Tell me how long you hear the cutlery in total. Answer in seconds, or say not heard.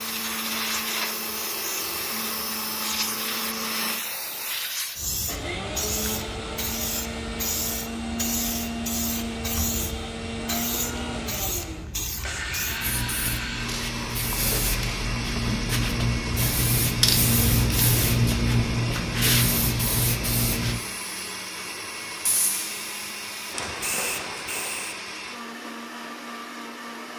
not heard.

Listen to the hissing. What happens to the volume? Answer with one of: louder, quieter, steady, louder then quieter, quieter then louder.
louder then quieter.